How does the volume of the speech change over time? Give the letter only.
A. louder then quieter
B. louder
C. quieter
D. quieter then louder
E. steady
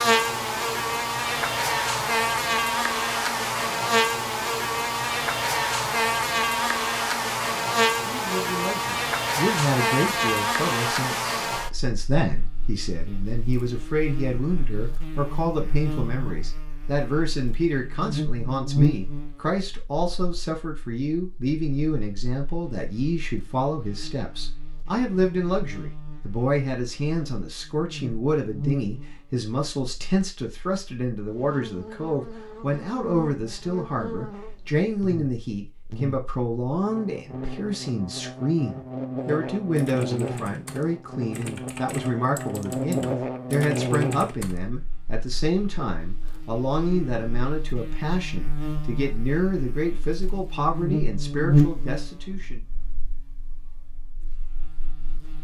E.